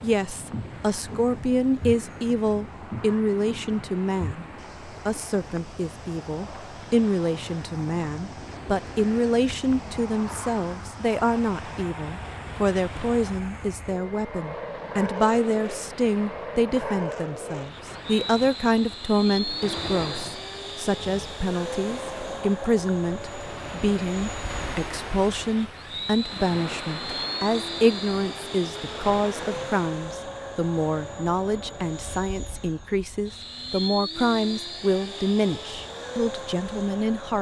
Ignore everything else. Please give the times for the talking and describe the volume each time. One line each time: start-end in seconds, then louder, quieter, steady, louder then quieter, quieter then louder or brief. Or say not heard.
0.0-37.3 steady.